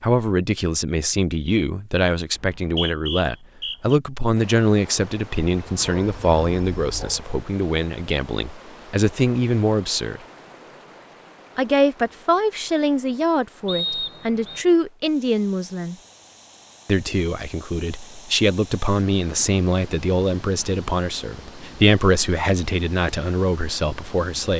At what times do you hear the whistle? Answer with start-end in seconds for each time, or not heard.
2.4-4.0, 13.7-14.7.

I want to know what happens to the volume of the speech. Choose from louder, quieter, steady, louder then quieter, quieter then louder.
steady.